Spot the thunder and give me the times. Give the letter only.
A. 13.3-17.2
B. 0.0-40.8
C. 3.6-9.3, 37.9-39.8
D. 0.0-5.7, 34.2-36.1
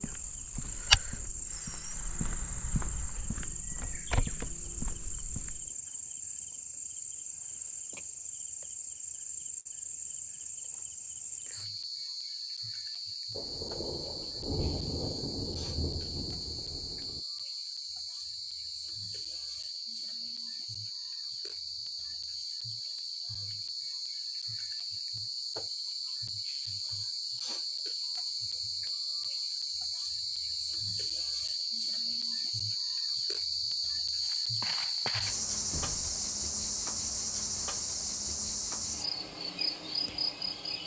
A.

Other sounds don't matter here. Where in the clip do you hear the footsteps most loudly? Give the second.
1 s.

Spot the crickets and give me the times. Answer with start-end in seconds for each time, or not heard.
0.0-40.8.